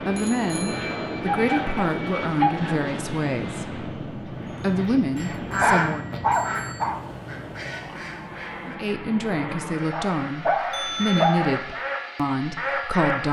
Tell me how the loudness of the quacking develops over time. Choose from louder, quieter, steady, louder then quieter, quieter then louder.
quieter then louder.